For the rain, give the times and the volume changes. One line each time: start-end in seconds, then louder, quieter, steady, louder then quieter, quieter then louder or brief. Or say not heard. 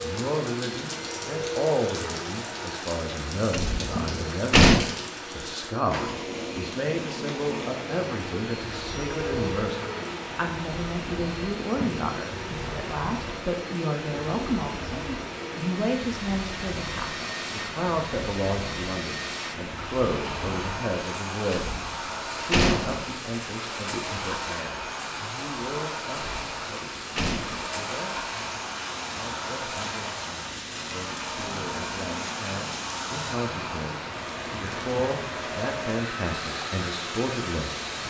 0.0-38.0 steady.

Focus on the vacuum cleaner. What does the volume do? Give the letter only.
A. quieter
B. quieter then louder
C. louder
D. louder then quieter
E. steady
E.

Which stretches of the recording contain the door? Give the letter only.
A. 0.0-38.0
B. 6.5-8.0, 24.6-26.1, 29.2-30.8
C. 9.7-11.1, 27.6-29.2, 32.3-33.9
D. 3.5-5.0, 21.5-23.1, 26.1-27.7
D.